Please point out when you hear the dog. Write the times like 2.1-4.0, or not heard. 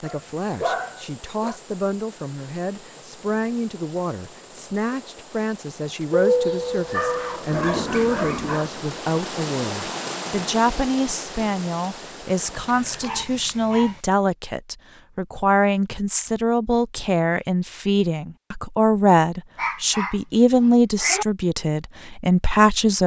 0.1-1.6, 6.1-8.7, 12.7-14.0, 19.6-21.2.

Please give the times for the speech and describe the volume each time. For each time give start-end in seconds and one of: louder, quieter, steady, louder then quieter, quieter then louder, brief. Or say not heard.
0.0-23.0 louder.